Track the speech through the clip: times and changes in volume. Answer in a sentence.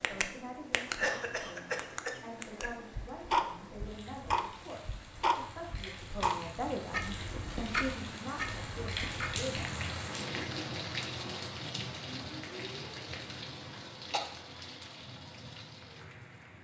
You can hear the speech from 0.1 to 9.8 s, getting louder.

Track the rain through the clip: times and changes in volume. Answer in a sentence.
You can hear the rain from 0.0 to 16.5 s, getting louder then quieter.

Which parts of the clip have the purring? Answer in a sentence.
You can't hear the purring here.